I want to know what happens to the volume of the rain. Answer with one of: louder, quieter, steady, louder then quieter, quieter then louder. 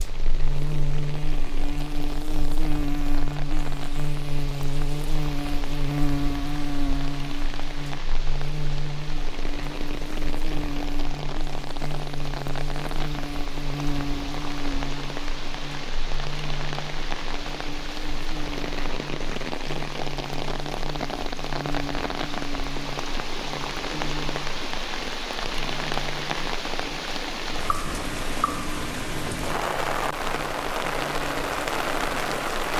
louder.